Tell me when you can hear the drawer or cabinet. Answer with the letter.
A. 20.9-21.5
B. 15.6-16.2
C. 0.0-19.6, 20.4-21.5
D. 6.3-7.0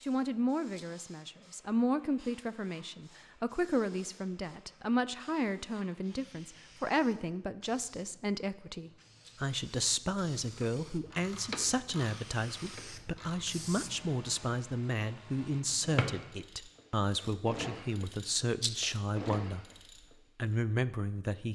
B.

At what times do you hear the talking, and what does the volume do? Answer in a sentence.
The talking can be heard from 0.0 to 19.6 s, at a steady volume; and briefly from 20.4 to 21.5 s.